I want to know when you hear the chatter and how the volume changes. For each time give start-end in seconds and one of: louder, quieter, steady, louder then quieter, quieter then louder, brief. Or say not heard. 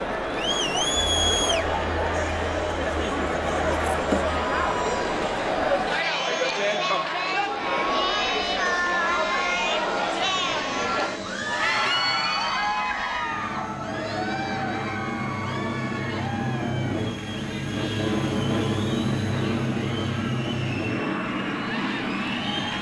0.0-22.7 quieter.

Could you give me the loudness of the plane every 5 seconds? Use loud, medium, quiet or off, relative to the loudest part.
medium, medium, medium, loud, loud.